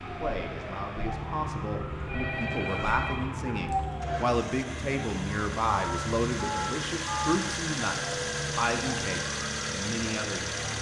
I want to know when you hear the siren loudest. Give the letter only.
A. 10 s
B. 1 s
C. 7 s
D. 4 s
D.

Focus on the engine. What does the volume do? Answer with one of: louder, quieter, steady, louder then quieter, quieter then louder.
louder.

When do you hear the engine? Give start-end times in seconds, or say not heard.
0.0-10.7.